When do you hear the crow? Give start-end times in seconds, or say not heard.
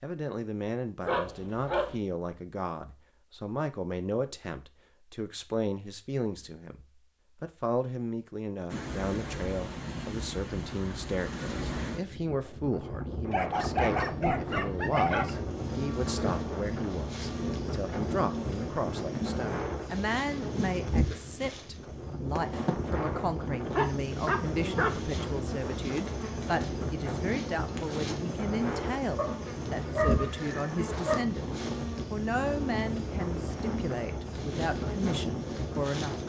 not heard.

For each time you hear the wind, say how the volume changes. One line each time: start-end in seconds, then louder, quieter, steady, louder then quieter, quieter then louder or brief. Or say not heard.
8.7-36.2 steady.